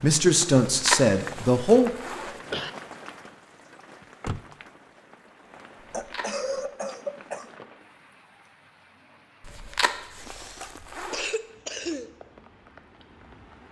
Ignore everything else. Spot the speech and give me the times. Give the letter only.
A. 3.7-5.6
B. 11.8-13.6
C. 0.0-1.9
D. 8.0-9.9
C.